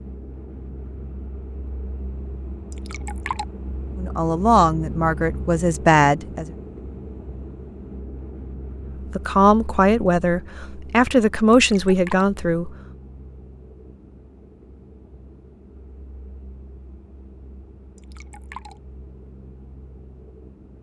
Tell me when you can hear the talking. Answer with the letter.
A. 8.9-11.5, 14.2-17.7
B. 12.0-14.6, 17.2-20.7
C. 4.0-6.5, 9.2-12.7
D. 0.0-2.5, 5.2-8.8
C.